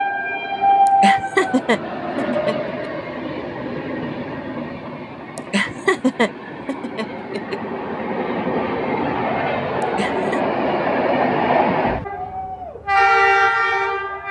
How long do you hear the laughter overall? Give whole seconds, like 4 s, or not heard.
5 s.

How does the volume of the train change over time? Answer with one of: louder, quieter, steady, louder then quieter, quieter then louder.
quieter then louder.